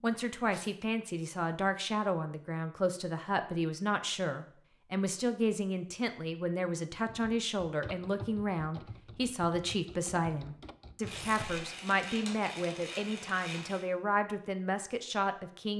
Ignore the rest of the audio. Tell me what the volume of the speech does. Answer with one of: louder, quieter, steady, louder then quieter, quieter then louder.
steady.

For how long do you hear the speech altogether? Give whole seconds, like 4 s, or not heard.
16 s.